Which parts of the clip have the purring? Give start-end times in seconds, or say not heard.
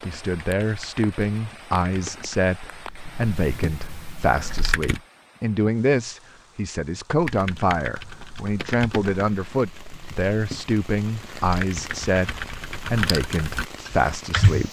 not heard.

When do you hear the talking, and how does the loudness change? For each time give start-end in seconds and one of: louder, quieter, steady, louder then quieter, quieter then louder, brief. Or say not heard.
0.1-14.6 steady.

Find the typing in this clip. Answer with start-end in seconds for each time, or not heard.
0.0-5.0, 7.2-14.6.